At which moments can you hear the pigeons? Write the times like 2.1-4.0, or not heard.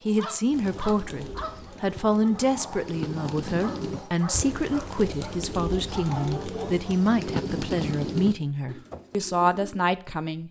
0.5-9.8.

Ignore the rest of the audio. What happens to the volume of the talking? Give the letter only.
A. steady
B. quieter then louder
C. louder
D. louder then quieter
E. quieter
A.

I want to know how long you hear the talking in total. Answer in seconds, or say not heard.
10 s.